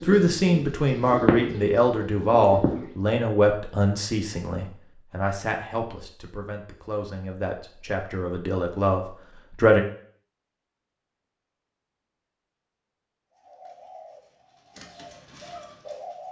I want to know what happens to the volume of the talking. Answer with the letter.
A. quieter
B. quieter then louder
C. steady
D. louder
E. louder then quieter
B.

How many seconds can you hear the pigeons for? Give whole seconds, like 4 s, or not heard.
6 s.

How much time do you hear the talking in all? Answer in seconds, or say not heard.
10 s.